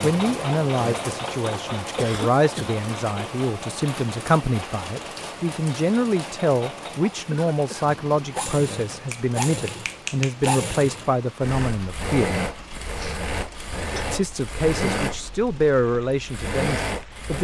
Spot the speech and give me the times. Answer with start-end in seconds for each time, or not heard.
0.0-12.4, 14.1-17.3.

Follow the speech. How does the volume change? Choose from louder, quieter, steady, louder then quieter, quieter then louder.
steady.